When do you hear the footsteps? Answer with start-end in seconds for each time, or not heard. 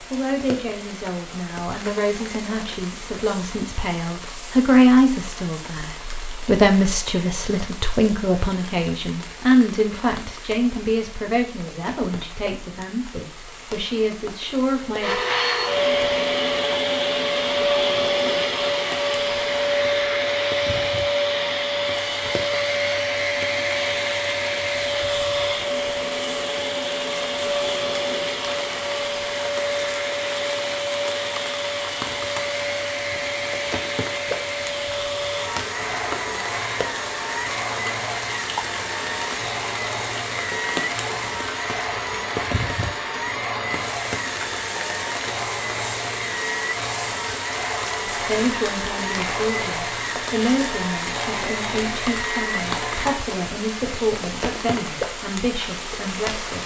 not heard.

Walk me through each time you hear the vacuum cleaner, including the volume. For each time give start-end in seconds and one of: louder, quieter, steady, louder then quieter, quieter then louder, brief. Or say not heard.
15.0-53.2 quieter.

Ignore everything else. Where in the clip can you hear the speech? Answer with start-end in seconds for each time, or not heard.
0.1-15.2, 48.2-56.6.